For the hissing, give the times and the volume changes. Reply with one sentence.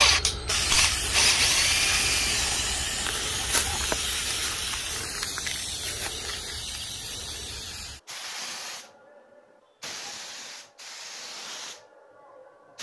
The hissing can be heard from 0.0 to 12.7 s, getting quieter.